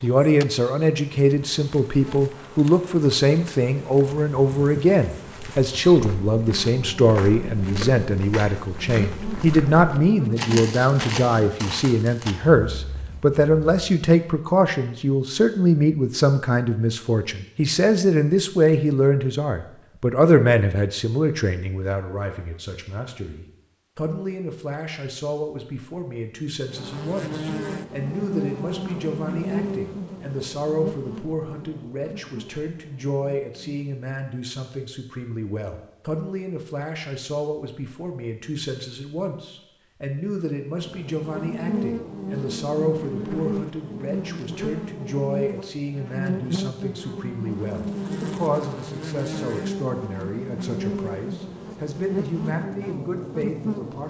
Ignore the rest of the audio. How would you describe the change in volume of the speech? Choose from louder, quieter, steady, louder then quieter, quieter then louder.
quieter.